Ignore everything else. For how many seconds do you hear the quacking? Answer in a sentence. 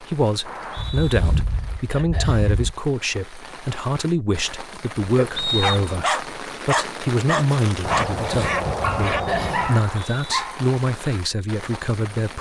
The quacking can be heard for 4 seconds in total.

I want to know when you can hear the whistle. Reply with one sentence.
The whistle can be heard from 0.5 to 1.2 s, from 5.3 to 6.0 s and from 9.7 to 10.2 s.